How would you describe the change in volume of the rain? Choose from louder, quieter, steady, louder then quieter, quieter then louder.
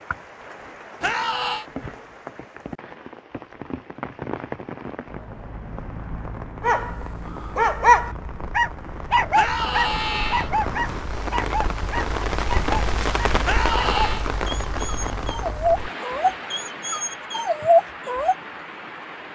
louder then quieter.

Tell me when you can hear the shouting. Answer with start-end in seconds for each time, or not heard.
1.0-1.6, 9.3-10.5, 13.4-14.2.